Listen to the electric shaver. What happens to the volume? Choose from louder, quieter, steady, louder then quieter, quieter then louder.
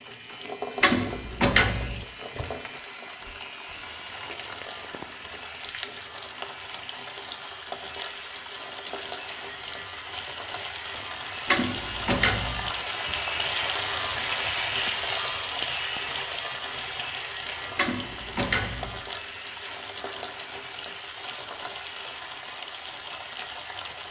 louder then quieter.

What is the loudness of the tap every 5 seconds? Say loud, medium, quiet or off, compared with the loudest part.
medium, medium, loud, loud, medium.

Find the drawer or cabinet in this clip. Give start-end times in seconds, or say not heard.
0.8-2.0, 11.4-12.7, 17.8-19.0.